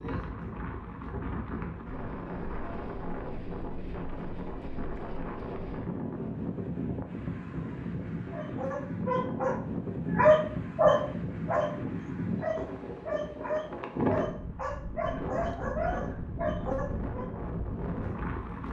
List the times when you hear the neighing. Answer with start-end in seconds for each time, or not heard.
not heard.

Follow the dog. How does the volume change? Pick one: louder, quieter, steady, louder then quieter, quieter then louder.
louder then quieter.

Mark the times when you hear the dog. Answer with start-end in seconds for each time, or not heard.
8.3-11.8, 12.4-17.3.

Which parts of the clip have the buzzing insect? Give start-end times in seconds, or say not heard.
not heard.